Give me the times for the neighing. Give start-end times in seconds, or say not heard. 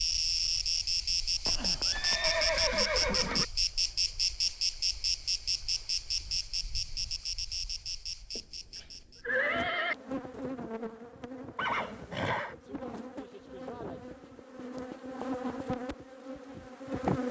1.4-3.5, 8.3-9.9, 11.6-12.6.